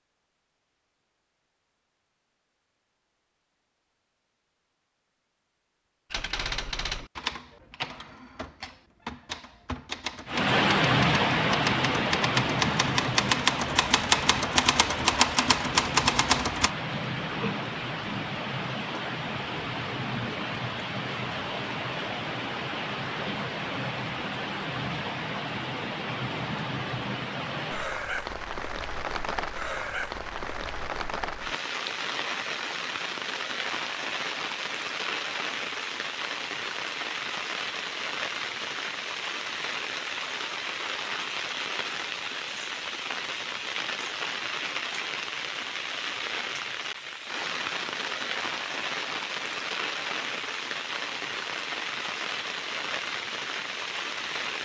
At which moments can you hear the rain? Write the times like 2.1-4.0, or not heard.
10.2-54.6.